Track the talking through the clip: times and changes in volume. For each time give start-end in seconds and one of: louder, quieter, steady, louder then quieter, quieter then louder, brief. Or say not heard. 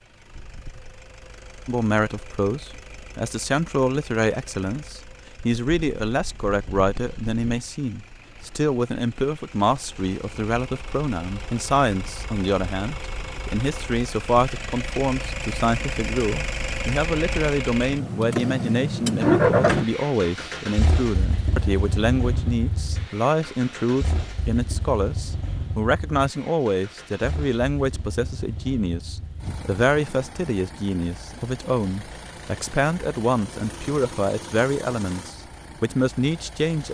1.6-36.8 steady.